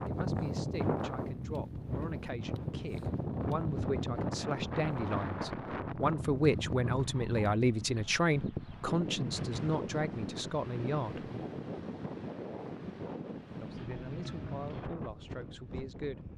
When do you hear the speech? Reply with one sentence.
You can hear the speech from 0.1 to 11.3 s and from 13.6 to 16.3 s.